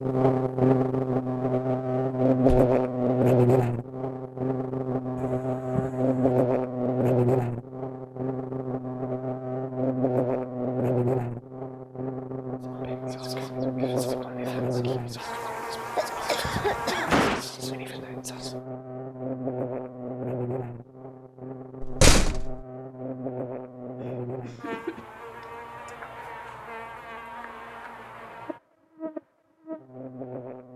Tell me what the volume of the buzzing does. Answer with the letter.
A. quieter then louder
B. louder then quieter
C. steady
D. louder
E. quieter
E.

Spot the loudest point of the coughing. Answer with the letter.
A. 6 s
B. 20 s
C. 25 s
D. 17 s
D.